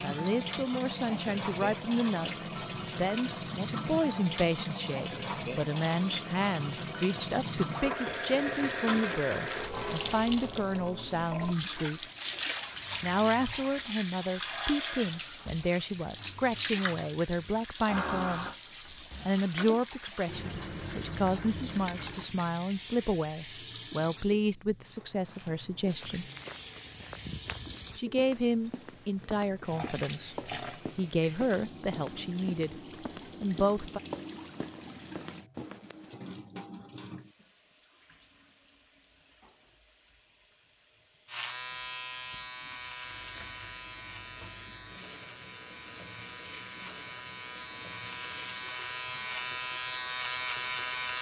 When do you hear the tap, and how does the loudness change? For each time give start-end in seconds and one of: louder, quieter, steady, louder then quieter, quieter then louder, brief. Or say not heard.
0.0-51.1 quieter.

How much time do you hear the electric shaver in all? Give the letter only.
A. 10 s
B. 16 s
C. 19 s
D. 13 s
A.